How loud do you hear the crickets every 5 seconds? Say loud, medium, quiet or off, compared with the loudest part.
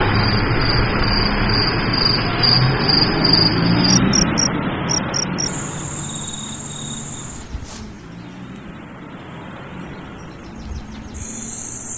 loud, medium, quiet.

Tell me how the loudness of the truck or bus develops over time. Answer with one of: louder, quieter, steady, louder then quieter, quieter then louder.
quieter.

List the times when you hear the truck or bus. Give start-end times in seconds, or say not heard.
0.0-11.9.